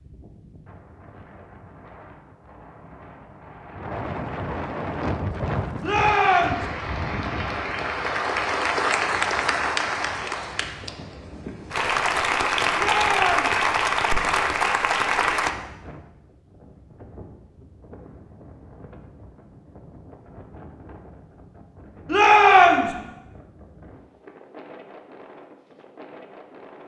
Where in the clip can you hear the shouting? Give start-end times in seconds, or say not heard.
5.8-6.7, 12.8-13.6, 22.1-22.9.